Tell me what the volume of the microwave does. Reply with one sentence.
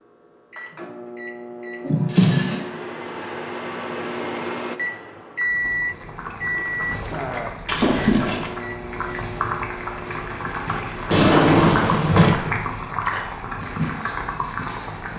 The volume of the microwave goes up, then down.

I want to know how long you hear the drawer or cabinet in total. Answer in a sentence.
The drawer or cabinet can be heard for 3 seconds in total.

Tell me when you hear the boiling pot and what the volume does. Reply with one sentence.
You can hear the boiling pot from 5.4 to 15.1 s, getting louder.